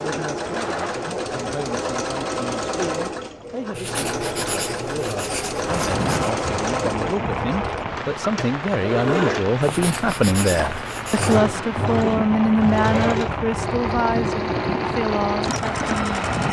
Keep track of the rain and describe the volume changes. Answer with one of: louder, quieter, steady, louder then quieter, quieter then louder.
steady.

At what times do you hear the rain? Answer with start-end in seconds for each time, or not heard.
5.7-16.4.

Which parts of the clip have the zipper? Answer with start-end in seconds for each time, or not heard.
0.4-1.1.